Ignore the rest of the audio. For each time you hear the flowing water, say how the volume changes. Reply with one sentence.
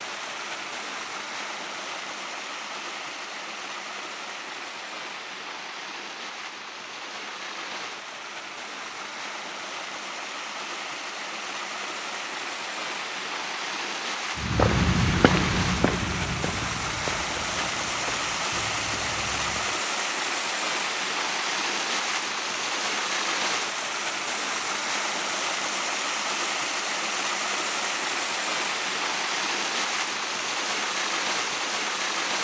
The flowing water can be heard from 0.0 to 32.4 s, getting louder.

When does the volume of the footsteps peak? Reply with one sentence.
The volume of the footsteps peaks at 15 seconds.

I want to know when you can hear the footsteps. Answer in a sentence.
The footsteps can be heard from 14.3 to 19.8 s.